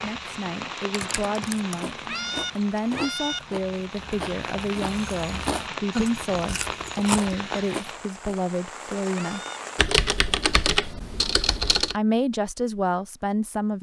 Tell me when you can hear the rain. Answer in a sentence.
The rain can be heard from 0.0 to 9.8 s.